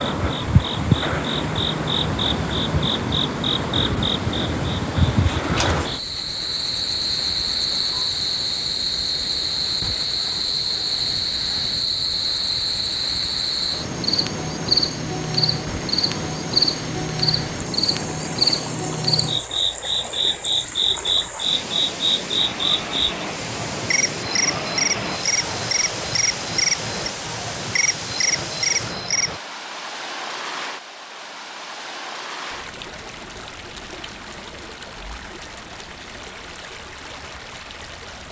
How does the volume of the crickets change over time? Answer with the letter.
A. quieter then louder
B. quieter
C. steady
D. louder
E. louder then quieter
C.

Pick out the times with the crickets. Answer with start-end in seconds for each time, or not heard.
0.0-29.4.